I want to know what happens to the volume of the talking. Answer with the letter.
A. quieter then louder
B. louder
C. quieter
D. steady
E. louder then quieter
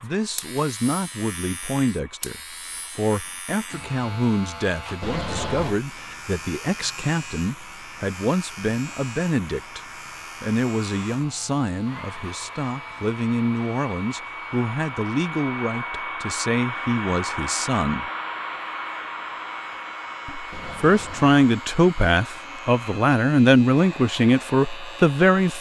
B.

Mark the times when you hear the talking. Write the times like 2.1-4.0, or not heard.
0.0-18.1, 20.2-25.5.